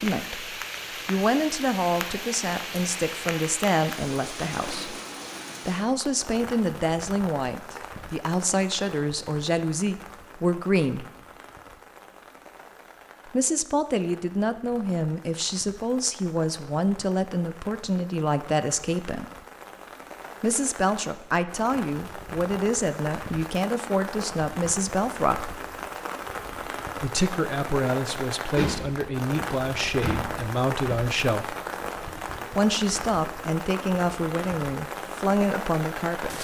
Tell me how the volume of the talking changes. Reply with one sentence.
The volume of the talking stays about the same.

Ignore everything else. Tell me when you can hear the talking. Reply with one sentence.
The talking can be heard from 0.0 to 5.0 s, from 5.7 to 11.1 s, from 13.3 to 19.2 s, from 20.4 to 25.6 s, from 26.9 to 31.6 s and from 32.5 to 36.3 s.